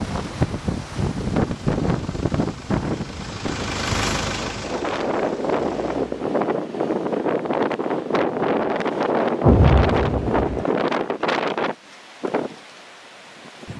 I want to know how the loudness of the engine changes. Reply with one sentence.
The loudness of the engine goes up, then down.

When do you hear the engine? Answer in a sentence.
The engine can be heard from 0.0 to 6.2 s.